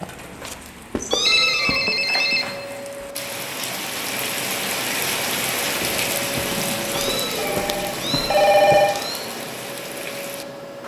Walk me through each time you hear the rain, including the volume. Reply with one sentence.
The rain can be heard from 0.0 to 10.8 s, getting louder then quieter.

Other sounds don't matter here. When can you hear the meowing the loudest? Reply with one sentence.
The loudest moment of the meowing is at 1 second.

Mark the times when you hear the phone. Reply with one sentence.
You can hear the phone from 1.2 to 2.5 s and from 7.3 to 8.9 s.